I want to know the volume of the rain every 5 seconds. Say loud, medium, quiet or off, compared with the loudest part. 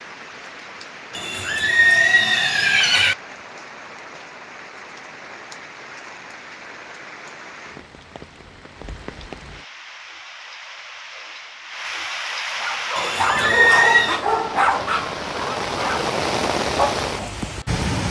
quiet, quiet, medium, loud.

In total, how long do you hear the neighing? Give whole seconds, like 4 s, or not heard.
3 s.